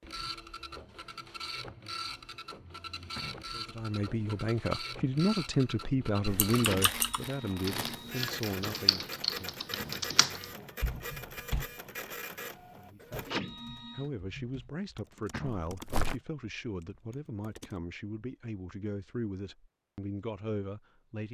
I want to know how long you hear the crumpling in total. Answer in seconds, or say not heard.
2 s.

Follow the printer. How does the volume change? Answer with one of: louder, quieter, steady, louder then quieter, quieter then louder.
steady.